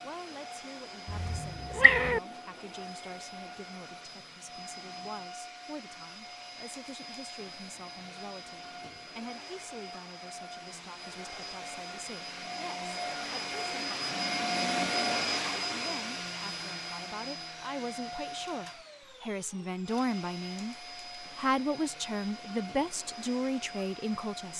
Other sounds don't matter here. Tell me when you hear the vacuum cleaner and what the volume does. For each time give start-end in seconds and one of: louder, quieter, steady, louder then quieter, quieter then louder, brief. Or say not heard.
0.0-24.5 louder then quieter.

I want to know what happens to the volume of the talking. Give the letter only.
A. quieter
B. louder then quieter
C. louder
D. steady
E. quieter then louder
C.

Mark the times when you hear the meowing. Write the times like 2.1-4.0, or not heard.
1.1-2.2.